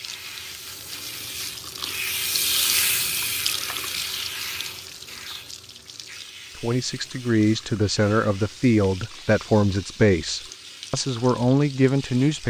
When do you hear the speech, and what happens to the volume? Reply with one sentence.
The speech can be heard from 6.5 to 12.4 s, at a steady volume.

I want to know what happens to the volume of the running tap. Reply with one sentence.
The volume of the running tap goes down.